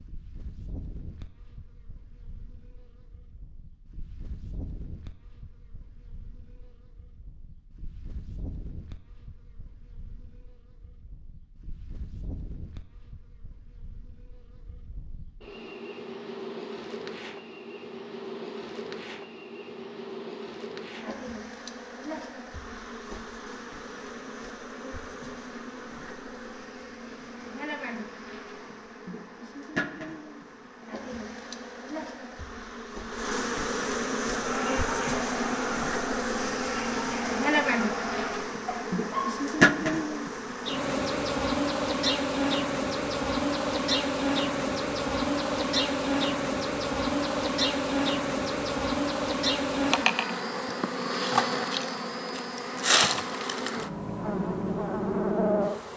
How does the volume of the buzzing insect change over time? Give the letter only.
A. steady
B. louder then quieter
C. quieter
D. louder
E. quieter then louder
D.